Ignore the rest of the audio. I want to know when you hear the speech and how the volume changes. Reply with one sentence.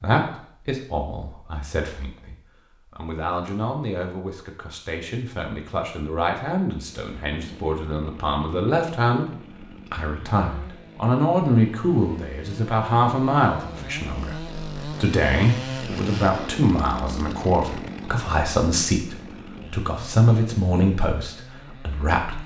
You can hear the speech from 0.0 to 22.4 s, getting louder.